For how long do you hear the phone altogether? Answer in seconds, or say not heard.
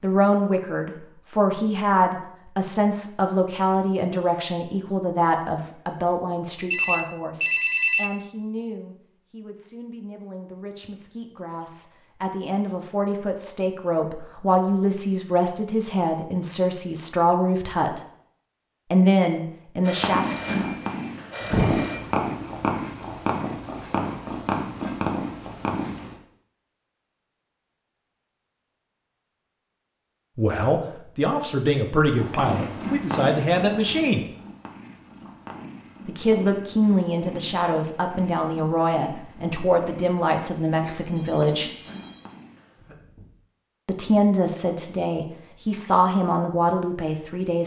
5 s.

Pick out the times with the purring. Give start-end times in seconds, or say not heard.
19.9-26.1, 32.1-43.2.